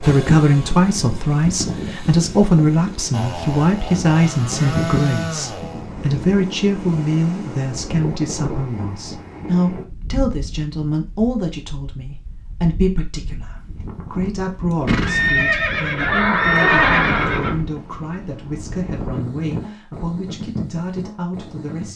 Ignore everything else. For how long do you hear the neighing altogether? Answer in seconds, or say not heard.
3 s.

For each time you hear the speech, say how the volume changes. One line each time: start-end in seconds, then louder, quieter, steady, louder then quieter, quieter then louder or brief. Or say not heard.
0.0-21.9 quieter.